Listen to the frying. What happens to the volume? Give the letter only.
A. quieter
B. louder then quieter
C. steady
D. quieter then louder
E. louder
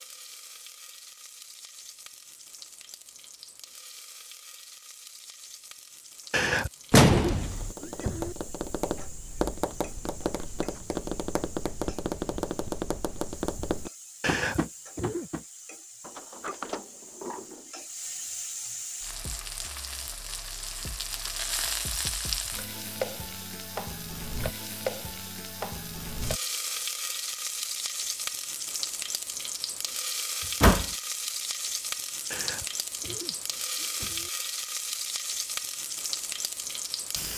E.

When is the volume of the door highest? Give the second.
7 s.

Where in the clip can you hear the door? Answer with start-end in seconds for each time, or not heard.
6.9-7.8, 16.0-17.7, 30.4-30.9.